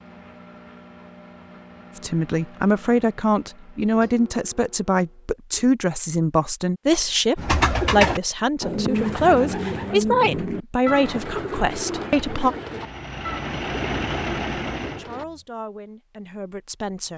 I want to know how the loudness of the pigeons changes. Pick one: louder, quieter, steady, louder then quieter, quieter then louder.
quieter.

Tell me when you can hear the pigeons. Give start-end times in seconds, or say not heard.
7.3-15.2.